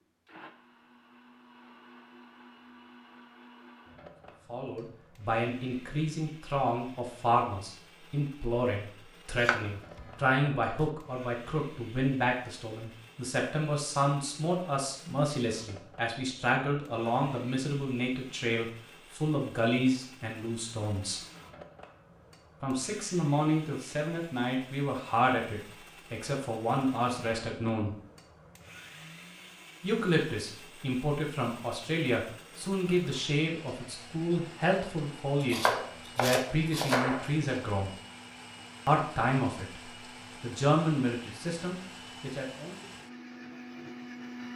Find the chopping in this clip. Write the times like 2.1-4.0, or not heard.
9.4-10.9, 35.4-37.3.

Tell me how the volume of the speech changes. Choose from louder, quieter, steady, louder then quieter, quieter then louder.
steady.